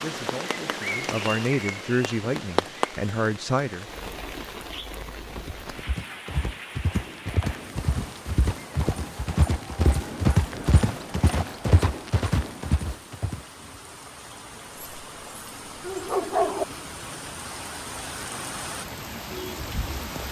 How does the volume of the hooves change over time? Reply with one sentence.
The loudness of the hooves goes up.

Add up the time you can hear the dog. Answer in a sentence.
The dog can be heard for 2 seconds in total.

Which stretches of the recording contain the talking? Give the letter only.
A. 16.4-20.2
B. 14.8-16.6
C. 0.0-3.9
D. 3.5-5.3
C.